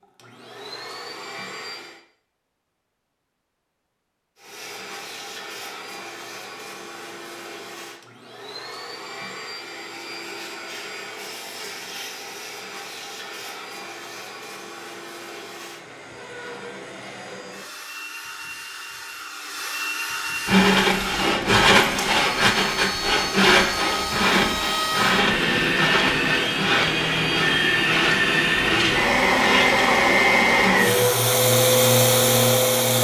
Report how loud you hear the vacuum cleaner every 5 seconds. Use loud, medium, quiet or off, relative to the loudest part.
quiet, quiet, quiet, quiet, medium, loud, loud.